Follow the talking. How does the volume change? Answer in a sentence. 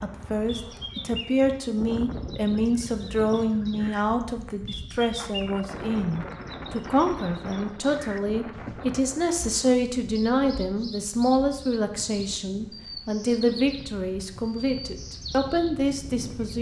The volume of the talking stays about the same.